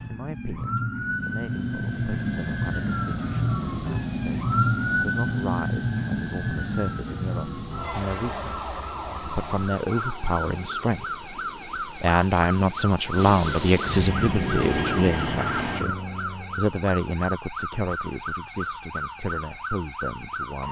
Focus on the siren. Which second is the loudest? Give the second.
5 s.